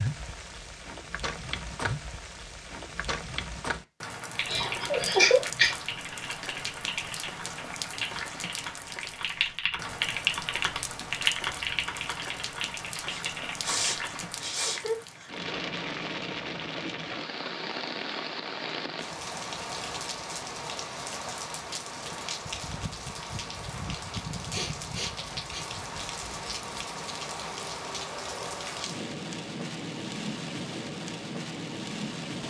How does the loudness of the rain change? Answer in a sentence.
The loudness of the rain stays about the same.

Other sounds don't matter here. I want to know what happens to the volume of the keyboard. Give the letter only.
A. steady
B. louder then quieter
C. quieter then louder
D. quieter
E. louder
B.